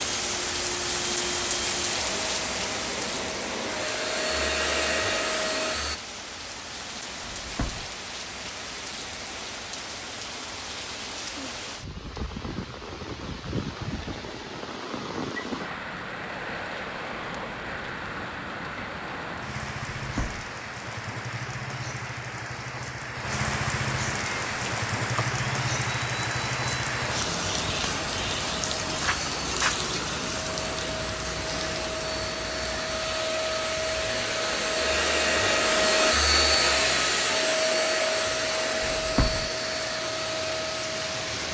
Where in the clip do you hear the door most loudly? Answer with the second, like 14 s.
39 s.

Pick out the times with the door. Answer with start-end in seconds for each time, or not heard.
7.2-7.9, 19.9-20.5, 38.8-39.5.